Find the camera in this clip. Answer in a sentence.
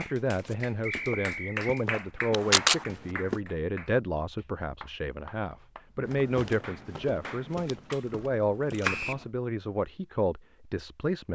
The camera can be heard from 2.3 to 2.9 s and from 7.5 to 9.1 s.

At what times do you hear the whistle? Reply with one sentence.
You can hear the whistle from 0.8 to 1.9 s and from 8.8 to 9.2 s.